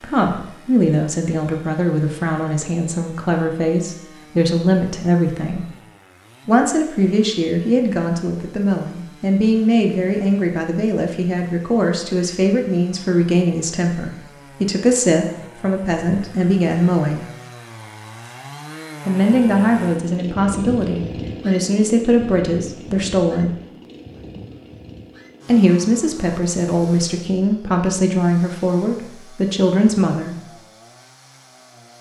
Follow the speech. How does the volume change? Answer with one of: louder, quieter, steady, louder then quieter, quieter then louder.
steady.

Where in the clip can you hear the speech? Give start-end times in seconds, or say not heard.
0.0-5.7, 6.5-17.2, 19.1-23.6, 25.4-30.4.